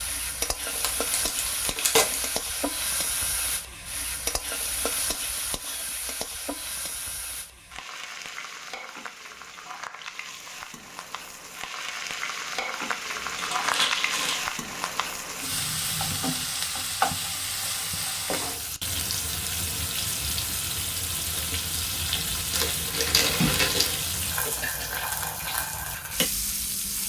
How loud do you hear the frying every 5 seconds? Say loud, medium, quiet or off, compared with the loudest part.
loud, medium, loud, loud, loud, loud.